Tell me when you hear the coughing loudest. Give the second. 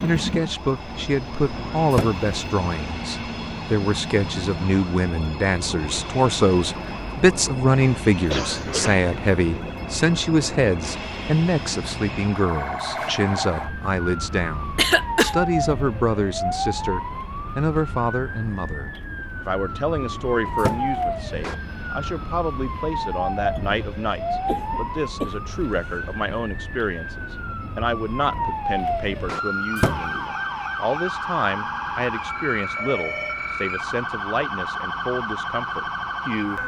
15 s.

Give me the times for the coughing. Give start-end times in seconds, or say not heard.
8.2-9.1, 14.8-15.3, 24.4-26.1.